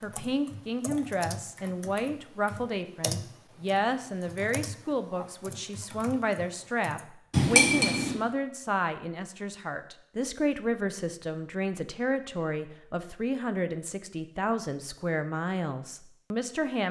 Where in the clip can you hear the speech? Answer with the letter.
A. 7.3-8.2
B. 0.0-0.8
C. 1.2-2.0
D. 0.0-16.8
D.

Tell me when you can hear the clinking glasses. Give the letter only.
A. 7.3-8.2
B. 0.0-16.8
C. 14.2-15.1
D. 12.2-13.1
A.